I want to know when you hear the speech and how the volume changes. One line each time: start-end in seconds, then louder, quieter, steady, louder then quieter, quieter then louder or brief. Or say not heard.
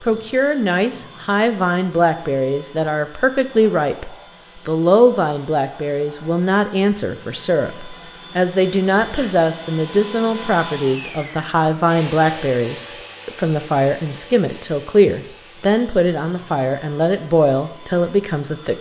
0.0-18.7 steady.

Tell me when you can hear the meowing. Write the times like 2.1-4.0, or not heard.
not heard.